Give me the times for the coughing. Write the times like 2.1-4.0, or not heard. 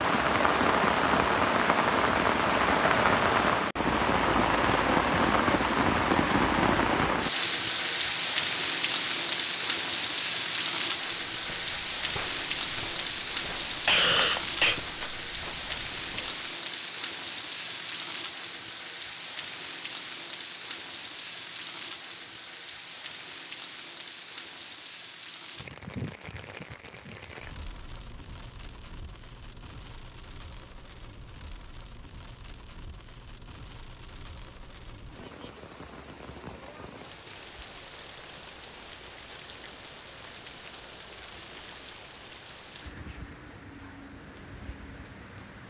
13.8-14.8.